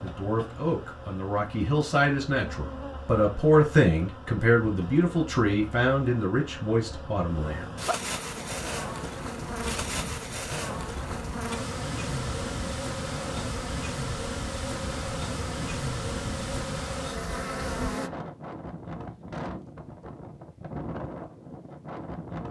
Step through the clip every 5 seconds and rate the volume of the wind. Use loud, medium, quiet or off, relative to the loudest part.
off, loud, loud, loud, loud.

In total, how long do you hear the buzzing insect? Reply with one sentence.
The buzzing insect can be heard for 18 seconds in total.